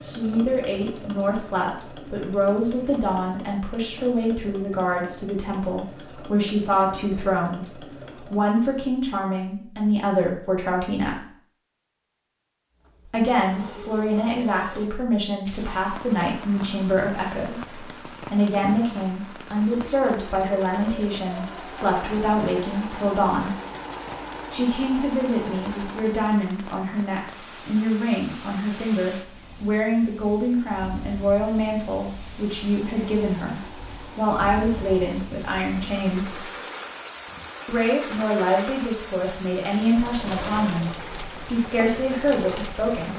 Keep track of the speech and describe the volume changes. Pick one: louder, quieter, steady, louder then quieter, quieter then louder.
steady.